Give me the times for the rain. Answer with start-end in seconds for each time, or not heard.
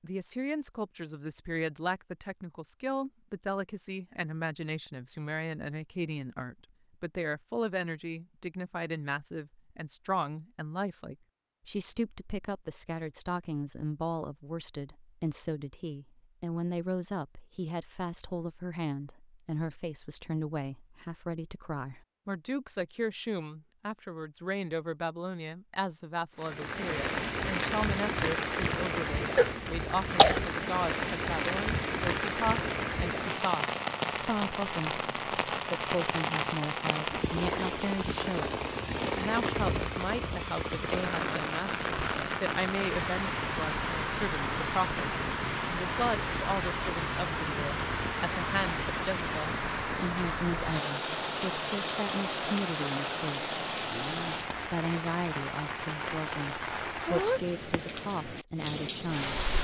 26.4-59.5.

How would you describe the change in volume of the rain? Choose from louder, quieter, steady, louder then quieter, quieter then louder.
steady.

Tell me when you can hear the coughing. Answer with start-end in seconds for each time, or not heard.
29.4-30.5.